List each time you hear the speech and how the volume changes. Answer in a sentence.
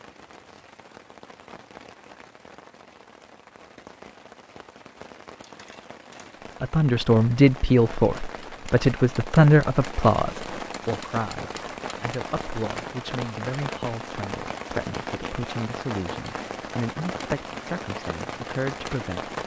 The speech can be heard from 6.6 to 19.4 s, getting quieter.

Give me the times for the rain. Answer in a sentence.
The rain can be heard from 0.0 to 19.4 s.